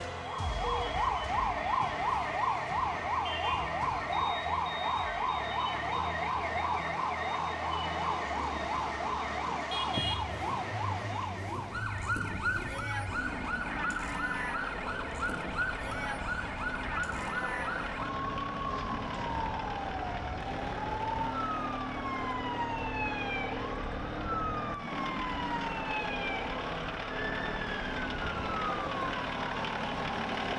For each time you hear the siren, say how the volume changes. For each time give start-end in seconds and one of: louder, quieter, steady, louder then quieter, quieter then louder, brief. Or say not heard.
0.0-30.5 quieter.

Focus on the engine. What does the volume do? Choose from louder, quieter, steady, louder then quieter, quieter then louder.
louder.